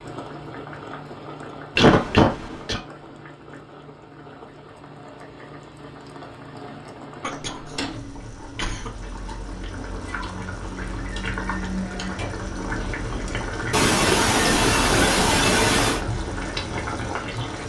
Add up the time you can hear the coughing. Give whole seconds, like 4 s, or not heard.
5 s.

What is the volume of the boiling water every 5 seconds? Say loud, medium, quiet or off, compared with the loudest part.
medium, medium, loud, loud.